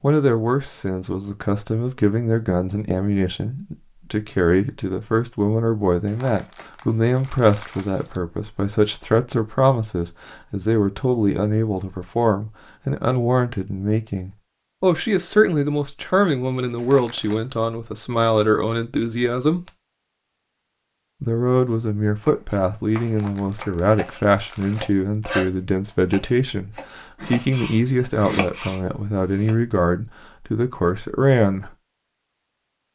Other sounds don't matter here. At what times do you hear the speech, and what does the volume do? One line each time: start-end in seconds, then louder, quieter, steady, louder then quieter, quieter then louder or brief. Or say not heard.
0.0-19.7 steady
21.2-31.7 steady.